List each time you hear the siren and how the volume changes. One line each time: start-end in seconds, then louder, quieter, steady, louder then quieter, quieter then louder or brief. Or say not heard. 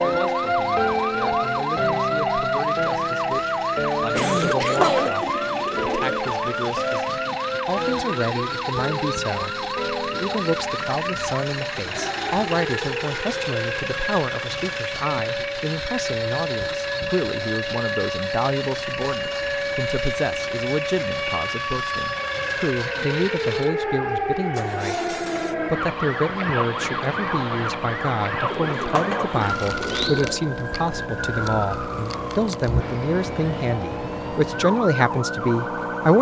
0.0-36.1 quieter.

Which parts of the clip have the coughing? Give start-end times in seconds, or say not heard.
4.2-5.2.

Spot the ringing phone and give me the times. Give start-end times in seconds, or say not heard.
not heard.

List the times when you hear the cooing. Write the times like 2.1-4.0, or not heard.
4.5-6.2, 28.5-30.4.